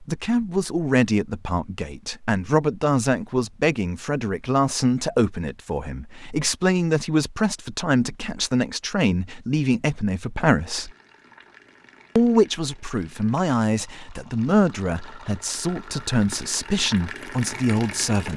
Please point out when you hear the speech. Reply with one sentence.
The speech can be heard from 0.0 to 10.9 s and from 12.2 to 18.3 s.